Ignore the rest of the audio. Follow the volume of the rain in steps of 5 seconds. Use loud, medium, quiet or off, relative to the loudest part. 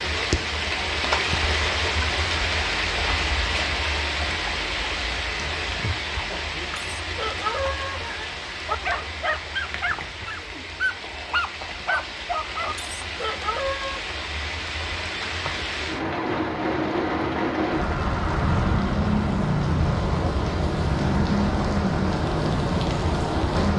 loud, medium, medium, loud, loud.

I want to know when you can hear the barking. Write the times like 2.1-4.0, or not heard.
6.8-14.1.